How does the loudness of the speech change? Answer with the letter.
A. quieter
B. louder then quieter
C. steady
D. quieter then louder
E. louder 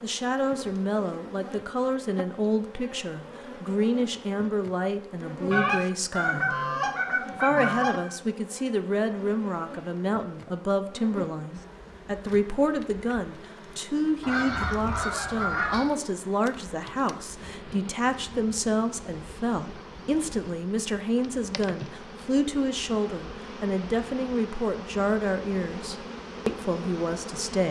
C.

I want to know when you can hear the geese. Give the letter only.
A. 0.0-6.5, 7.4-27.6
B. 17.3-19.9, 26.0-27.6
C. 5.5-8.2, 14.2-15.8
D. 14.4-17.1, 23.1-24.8
C.